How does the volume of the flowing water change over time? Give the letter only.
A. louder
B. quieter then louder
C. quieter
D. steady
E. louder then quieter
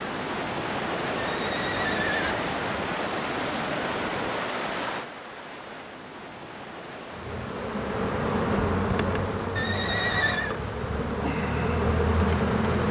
C.